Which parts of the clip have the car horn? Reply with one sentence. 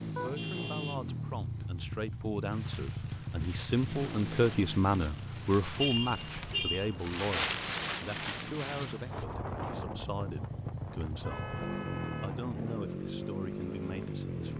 The car horn can be heard from 0.1 to 1.1 s, from 5.8 to 7.0 s and from 11.2 to 12.3 s.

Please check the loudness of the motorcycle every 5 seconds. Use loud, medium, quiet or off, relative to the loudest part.
loud, medium, loud.